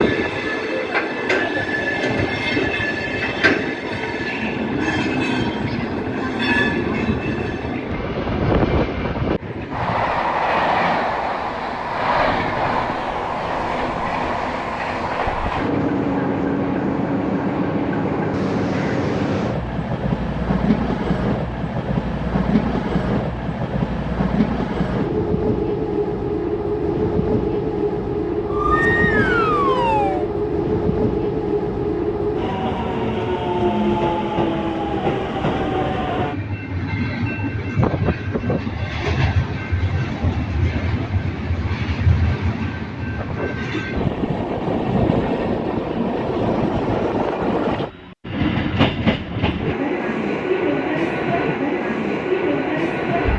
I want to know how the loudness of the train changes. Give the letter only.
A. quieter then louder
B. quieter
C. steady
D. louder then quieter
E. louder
C.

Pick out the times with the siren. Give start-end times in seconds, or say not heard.
28.4-30.3.